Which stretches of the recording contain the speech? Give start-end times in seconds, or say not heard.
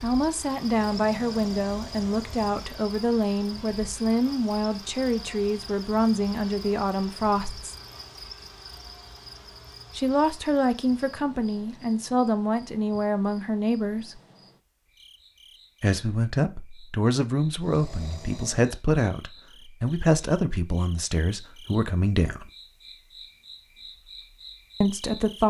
0.0-7.8, 9.9-14.2, 15.8-22.5, 24.8-25.4.